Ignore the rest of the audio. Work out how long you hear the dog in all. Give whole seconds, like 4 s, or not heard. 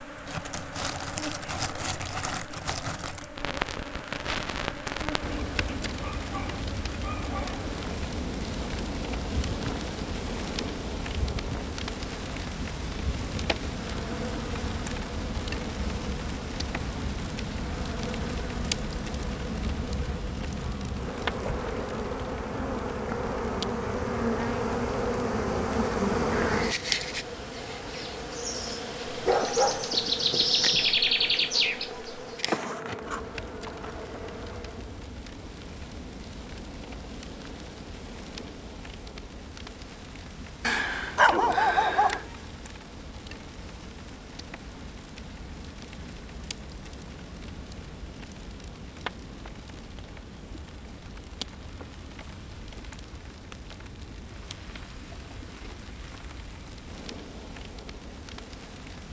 5 s.